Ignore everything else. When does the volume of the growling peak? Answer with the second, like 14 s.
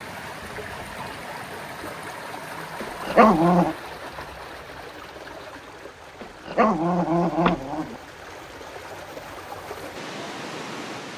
3 s.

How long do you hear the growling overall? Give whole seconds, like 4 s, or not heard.
3 s.